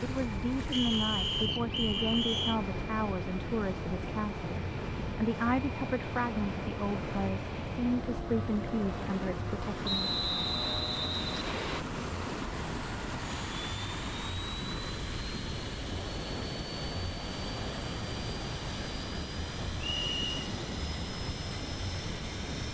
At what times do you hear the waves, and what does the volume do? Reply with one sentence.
You can hear the waves from 0.0 to 22.6 s, at a steady volume.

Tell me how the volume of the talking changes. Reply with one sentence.
The loudness of the talking stays about the same.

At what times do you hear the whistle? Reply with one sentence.
The whistle can be heard from 0.7 to 2.6 s, from 9.8 to 11.8 s and from 19.8 to 20.3 s.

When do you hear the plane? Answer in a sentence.
The plane can be heard from 0.0 to 22.6 s.